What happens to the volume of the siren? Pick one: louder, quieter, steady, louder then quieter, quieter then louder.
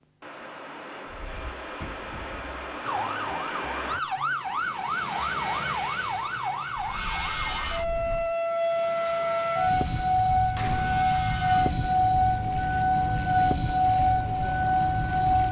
louder.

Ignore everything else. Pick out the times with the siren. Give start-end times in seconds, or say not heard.
2.9-15.4.